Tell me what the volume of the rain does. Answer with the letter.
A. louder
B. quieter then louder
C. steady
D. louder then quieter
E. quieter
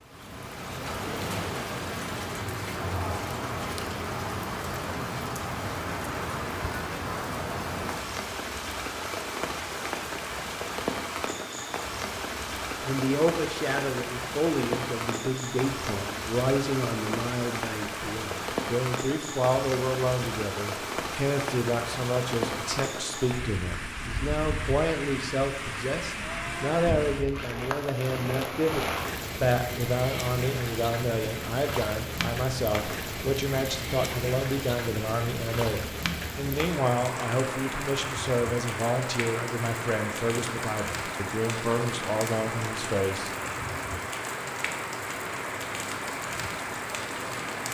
C.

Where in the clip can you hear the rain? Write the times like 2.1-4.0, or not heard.
0.0-47.6.